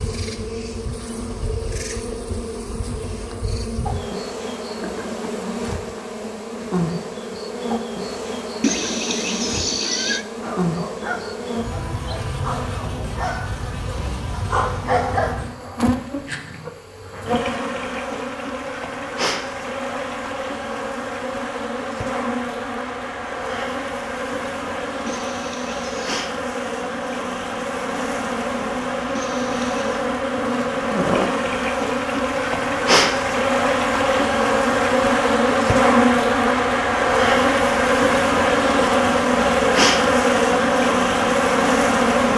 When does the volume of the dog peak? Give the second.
15 s.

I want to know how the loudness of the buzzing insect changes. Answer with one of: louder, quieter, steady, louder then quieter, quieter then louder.
louder.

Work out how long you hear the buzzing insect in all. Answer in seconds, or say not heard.
42 s.